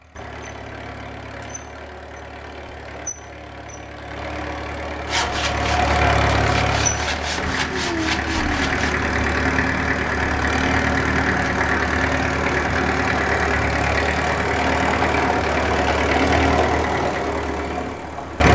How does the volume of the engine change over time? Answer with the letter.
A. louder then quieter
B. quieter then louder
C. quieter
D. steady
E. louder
E.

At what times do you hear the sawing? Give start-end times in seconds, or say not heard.
5.0-8.9.